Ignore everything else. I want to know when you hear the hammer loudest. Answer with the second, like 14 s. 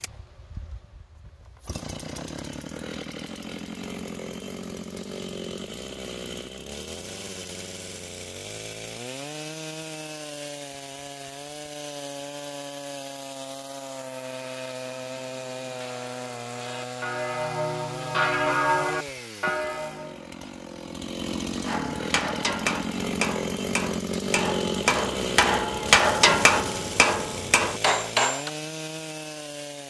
26 s.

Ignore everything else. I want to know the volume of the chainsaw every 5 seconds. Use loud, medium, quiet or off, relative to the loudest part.
medium, medium, medium, medium, loud, loud.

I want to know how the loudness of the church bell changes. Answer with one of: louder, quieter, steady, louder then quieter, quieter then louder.
louder.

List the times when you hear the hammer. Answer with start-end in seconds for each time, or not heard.
21.6-28.5.